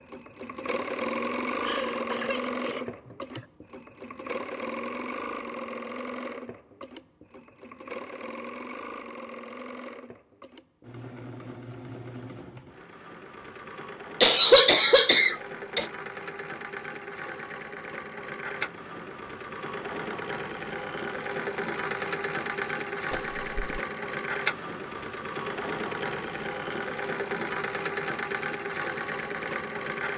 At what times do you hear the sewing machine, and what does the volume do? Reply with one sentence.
The sewing machine can be heard from 0.0 to 30.1 s, getting quieter then louder.